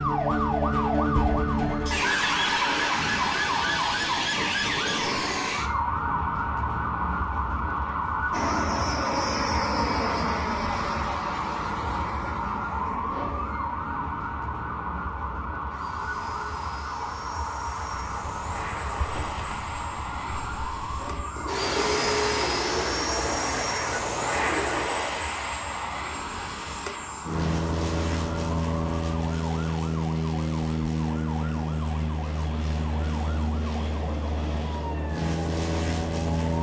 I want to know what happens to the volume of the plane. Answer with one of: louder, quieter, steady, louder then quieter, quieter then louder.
quieter then louder.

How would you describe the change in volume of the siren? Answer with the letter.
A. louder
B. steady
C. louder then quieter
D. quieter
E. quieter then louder
D.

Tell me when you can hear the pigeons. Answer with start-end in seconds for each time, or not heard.
17.9-24.9.